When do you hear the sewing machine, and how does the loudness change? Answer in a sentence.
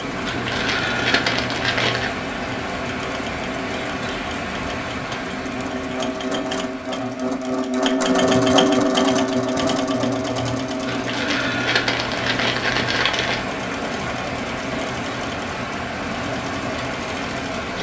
You can hear the sewing machine from 0.0 to 17.7 s, getting louder then quieter.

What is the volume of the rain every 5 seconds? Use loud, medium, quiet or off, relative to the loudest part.
loud, medium, loud, loud.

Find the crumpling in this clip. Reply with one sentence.
You can hear the crumpling from 0.2 to 2.1 s and from 10.8 to 13.4 s.